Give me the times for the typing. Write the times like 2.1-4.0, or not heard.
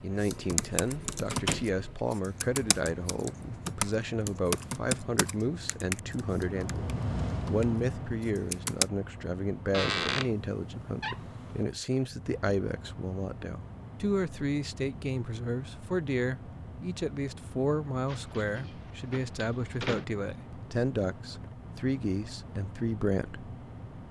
0.2-8.8.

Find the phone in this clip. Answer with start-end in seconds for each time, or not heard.
not heard.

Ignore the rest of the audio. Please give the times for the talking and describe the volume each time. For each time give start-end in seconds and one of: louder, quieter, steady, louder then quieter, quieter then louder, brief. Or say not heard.
0.0-23.5 steady.